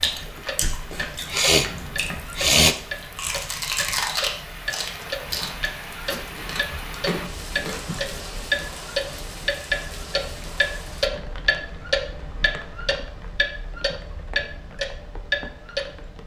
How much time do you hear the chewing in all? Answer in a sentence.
The chewing can be heard for 8 seconds in total.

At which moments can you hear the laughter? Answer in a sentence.
You can't hear the laughter here.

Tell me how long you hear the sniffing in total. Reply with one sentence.
You can hear the sniffing for 2 seconds altogether.